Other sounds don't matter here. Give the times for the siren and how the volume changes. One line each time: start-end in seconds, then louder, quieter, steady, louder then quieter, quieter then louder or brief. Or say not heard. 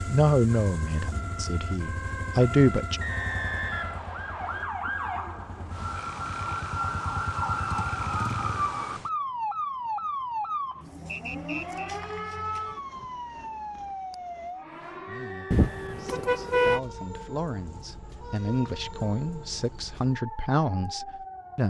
0.0-21.6 louder then quieter.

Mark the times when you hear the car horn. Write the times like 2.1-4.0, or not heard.
15.5-16.8.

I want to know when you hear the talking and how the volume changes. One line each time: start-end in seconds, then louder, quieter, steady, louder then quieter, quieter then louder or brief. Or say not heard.
0.1-3.0 brief
15.1-21.6 louder.